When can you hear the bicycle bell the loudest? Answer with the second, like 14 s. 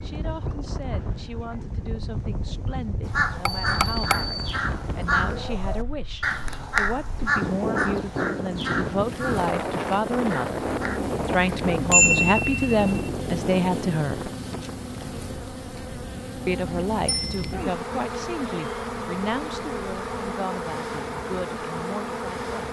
12 s.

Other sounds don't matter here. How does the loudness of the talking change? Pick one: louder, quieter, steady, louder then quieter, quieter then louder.
louder then quieter.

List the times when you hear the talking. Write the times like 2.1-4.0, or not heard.
0.0-10.7, 11.2-14.3, 16.4-22.6.